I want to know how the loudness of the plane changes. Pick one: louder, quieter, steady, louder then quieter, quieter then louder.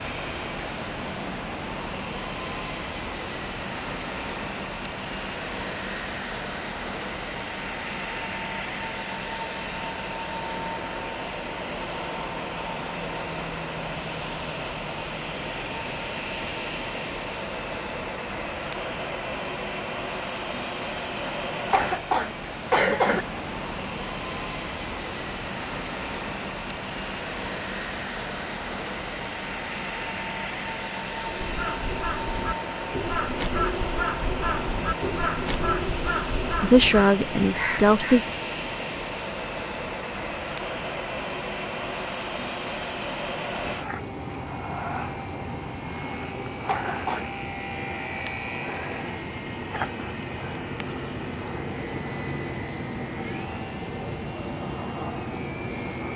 steady.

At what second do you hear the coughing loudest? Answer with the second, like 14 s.
23 s.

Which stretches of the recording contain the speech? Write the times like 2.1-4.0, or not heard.
36.6-38.2.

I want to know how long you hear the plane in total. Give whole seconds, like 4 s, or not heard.
56 s.